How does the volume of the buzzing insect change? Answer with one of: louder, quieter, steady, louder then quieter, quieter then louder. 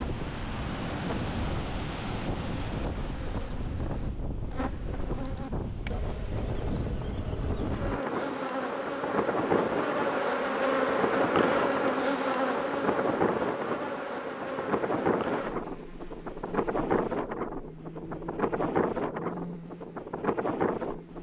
louder then quieter.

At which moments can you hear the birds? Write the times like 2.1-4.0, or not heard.
not heard.